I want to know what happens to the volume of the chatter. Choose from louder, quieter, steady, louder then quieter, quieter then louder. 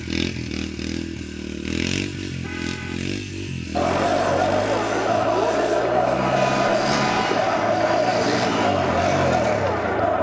steady.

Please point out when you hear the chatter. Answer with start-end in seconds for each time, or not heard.
3.8-10.1.